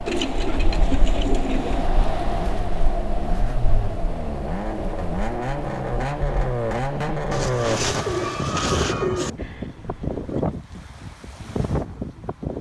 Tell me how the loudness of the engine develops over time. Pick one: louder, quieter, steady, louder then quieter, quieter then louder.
louder.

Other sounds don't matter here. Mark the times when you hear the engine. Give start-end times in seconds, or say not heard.
0.0-7.8.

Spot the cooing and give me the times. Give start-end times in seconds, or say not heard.
0.1-1.9, 7.3-9.3.